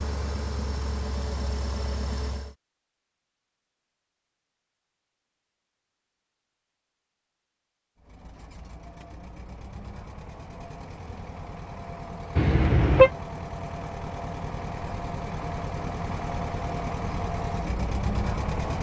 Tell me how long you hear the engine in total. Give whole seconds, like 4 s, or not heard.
13 s.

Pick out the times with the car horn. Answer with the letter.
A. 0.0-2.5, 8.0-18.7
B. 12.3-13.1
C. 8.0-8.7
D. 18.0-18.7
B.